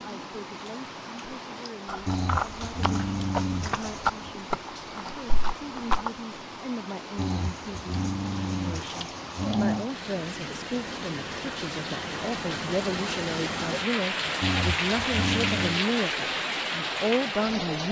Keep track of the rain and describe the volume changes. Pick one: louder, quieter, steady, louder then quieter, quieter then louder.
louder.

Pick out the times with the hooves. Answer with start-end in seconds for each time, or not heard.
1.9-6.1.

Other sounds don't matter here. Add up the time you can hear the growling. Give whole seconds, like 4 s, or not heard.
6 s.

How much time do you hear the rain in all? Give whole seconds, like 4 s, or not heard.
18 s.